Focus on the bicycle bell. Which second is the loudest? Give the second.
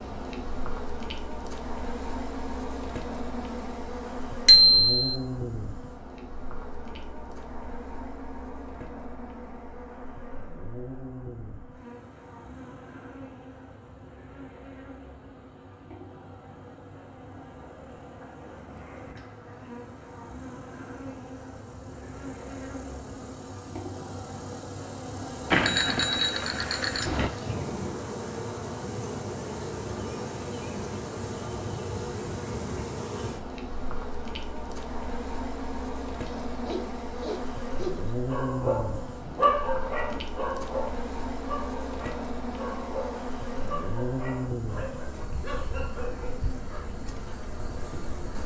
5 s.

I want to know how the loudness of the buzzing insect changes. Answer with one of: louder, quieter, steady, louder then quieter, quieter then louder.
quieter then louder.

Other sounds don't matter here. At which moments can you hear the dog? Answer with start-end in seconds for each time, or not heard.
36.2-46.8.